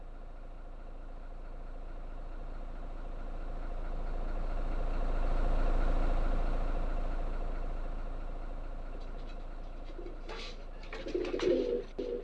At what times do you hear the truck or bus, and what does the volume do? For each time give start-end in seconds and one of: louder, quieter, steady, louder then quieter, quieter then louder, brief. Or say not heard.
0.0-12.1 louder then quieter.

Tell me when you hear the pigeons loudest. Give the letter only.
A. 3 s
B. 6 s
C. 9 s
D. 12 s
D.